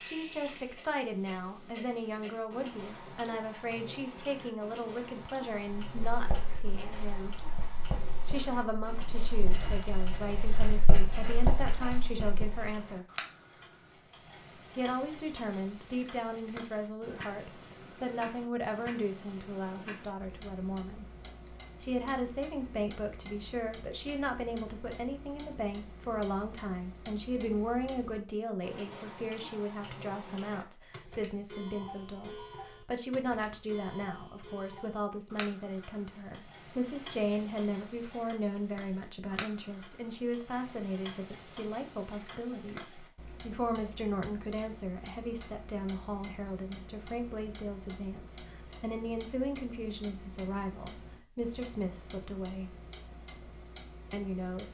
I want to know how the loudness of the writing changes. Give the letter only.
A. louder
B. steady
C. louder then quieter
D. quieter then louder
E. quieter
A.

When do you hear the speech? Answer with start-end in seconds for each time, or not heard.
0.0-7.3, 8.2-13.1, 14.8-21.1, 21.8-52.8, 54.1-54.6.